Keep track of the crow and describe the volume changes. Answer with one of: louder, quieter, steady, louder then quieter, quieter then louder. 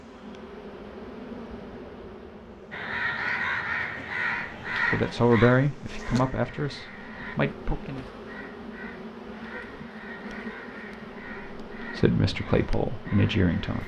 quieter.